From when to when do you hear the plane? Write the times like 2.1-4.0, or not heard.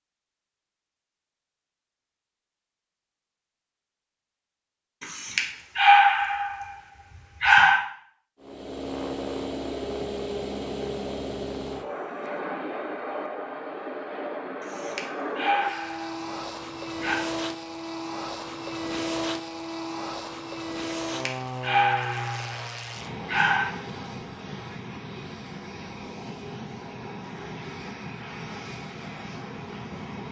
8.4-30.2.